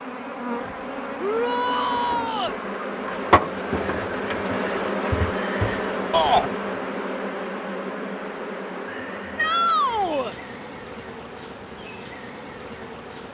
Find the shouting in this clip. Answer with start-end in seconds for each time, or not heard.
1.2-2.5, 6.1-6.5, 9.3-10.3.